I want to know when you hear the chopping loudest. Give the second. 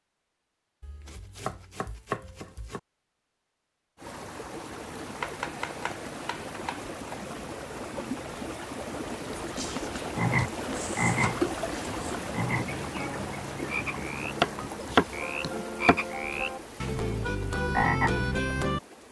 15 s.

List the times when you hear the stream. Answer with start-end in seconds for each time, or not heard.
4.0-19.0.